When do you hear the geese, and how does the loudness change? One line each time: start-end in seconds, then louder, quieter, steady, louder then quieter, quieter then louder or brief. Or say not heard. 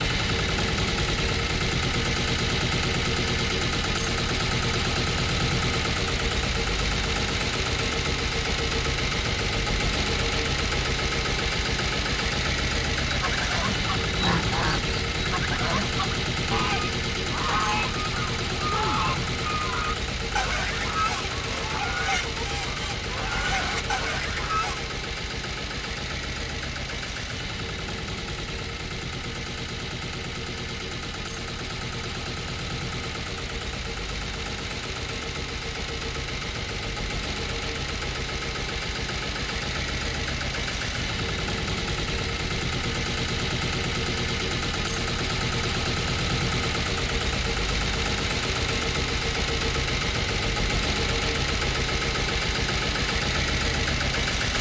13.2-24.9 steady.